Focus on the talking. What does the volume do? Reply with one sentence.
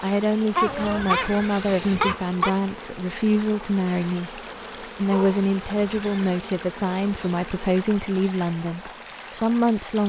The volume of the talking stays about the same.